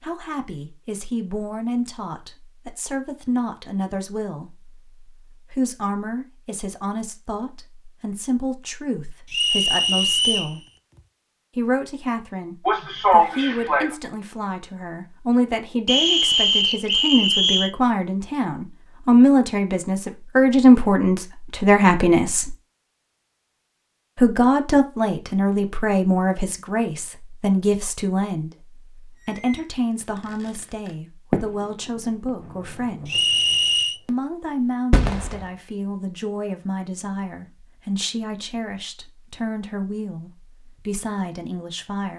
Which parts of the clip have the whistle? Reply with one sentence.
You can hear the whistle from 9.3 to 10.6 s, from 15.8 to 17.7 s and from 33.0 to 34.0 s.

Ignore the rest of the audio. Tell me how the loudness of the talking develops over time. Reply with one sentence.
The loudness of the talking goes up, then down.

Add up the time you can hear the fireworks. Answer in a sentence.
You can hear the fireworks for 5 seconds altogether.